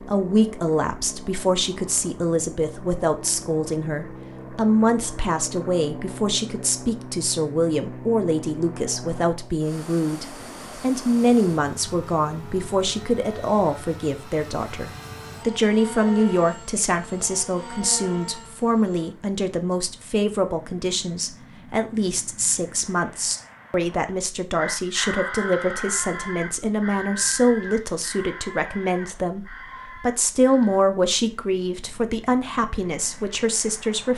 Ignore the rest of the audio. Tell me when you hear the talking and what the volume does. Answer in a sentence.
You can hear the talking from 0.1 to 34.1 s, at a steady volume.